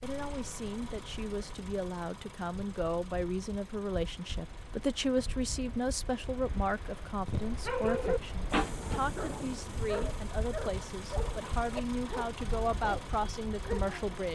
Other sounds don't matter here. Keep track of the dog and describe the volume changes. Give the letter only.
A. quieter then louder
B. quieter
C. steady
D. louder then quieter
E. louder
B.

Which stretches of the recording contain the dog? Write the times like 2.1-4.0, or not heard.
7.2-14.0.